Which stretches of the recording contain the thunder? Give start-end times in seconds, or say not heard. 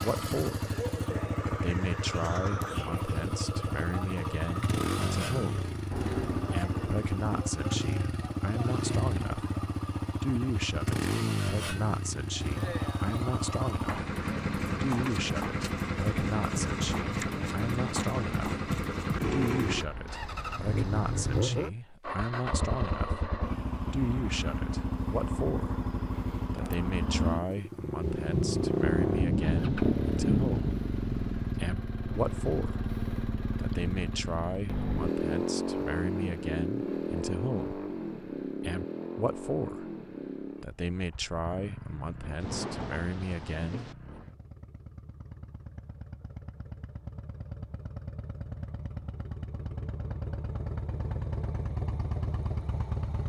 5.7-7.4, 28.0-31.6, 42.4-44.0.